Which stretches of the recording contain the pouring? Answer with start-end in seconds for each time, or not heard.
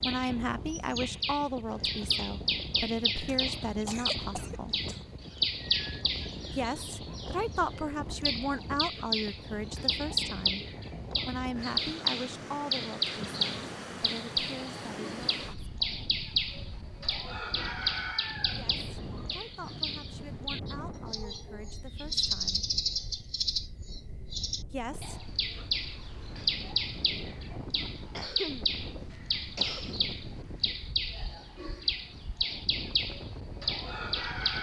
not heard.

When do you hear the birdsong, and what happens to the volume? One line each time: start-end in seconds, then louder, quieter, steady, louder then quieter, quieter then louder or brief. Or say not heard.
0.0-34.5 steady.